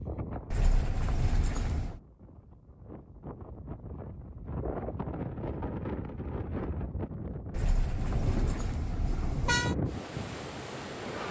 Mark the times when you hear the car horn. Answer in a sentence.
You can hear the car horn from 0.5 to 2.0 s and from 7.5 to 9.8 s.